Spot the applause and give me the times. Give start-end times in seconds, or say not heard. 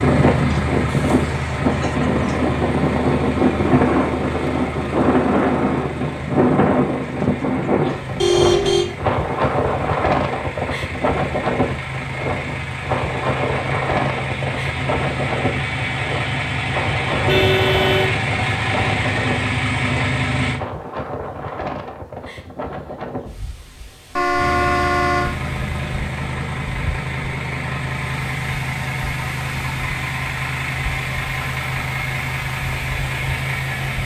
not heard.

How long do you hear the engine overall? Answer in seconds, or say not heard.
30 s.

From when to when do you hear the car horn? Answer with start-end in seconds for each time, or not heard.
8.2-8.8, 17.1-18.1, 24.1-25.3.